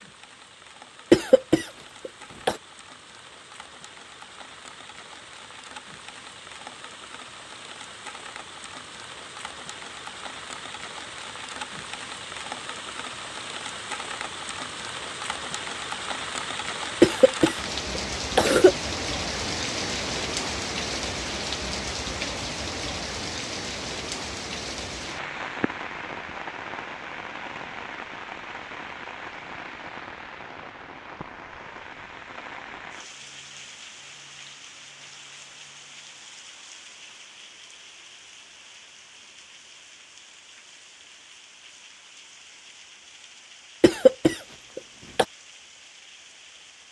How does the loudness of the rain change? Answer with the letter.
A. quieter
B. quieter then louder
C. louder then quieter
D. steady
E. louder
C.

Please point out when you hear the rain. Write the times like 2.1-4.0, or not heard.
0.0-46.8.